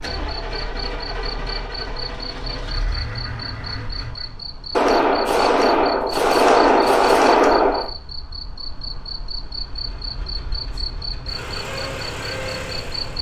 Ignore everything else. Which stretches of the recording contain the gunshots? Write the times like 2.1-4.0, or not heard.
4.8-7.9.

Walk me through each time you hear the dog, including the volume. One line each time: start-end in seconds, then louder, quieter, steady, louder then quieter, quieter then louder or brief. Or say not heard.
not heard.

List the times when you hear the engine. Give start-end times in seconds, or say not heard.
0.0-4.3, 9.5-13.1.